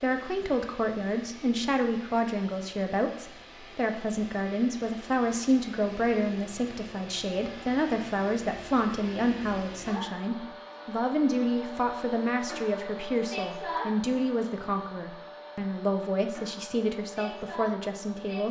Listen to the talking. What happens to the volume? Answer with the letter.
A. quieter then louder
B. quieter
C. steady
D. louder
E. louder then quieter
C.